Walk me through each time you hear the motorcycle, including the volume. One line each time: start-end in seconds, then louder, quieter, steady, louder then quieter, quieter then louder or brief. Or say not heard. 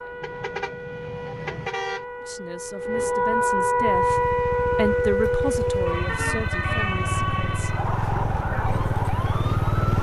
3.7-9.9 louder.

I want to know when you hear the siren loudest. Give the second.
4 s.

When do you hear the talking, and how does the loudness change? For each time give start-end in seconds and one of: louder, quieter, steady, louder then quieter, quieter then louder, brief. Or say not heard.
2.2-7.8 louder then quieter.